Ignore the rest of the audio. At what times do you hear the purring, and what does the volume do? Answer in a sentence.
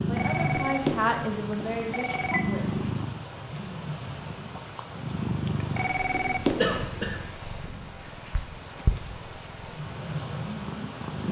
You can hear the purring from 0.0 to 11.2 s, getting quieter then louder.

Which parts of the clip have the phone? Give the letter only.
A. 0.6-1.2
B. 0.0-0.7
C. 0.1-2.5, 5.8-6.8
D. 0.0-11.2
C.